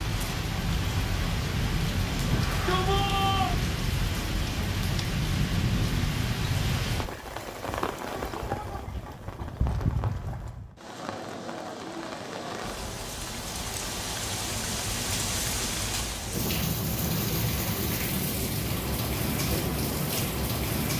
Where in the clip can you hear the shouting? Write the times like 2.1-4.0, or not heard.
2.2-3.5.